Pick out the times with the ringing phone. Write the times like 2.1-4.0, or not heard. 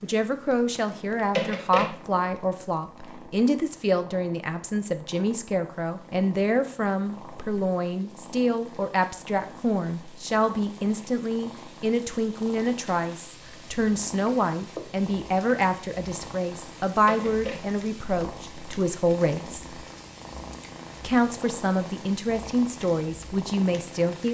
1.4-1.9, 17.1-17.6.